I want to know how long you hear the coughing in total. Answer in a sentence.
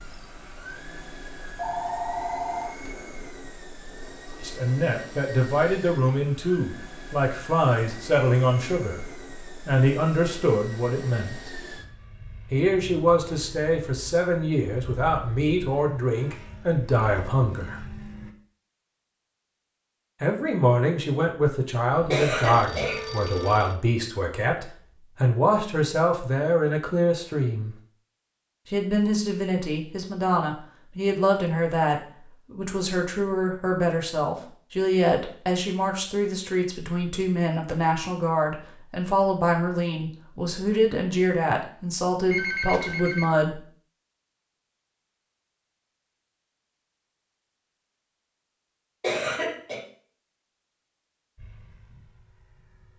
You can hear the coughing for 2 seconds altogether.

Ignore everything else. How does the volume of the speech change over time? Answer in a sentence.
The volume of the speech stays about the same.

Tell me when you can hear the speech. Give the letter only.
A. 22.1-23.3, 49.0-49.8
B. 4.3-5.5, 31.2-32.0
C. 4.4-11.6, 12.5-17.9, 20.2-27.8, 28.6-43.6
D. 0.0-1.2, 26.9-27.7
C.